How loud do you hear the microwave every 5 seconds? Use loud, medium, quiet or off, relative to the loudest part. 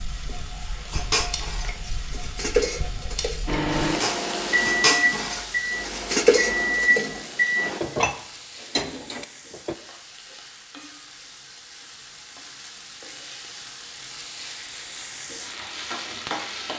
loud, loud, off, off.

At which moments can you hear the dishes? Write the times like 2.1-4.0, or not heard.
0.8-9.8.